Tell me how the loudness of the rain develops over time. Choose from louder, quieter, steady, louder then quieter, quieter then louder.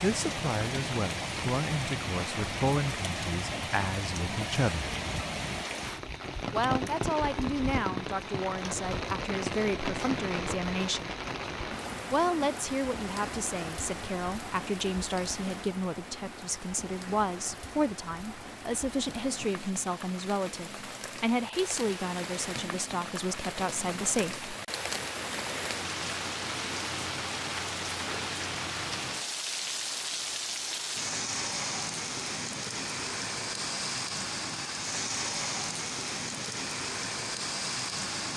quieter then louder.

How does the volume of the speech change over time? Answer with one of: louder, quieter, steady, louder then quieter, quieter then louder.
steady.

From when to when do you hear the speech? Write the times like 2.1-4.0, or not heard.
0.0-4.9, 6.5-11.2, 12.1-24.4.